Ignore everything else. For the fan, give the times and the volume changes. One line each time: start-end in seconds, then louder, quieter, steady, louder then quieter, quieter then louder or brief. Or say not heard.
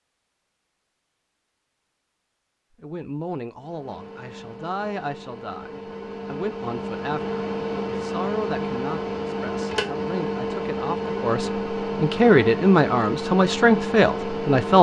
3.5-14.7 louder.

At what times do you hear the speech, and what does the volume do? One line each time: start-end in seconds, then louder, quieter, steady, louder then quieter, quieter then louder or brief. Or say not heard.
2.8-14.7 louder.